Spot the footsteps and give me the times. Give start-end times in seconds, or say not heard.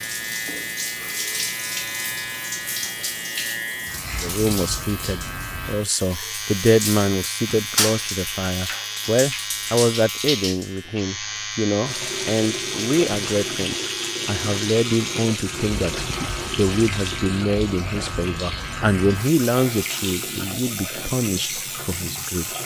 not heard.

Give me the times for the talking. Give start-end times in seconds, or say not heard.
4.2-22.5.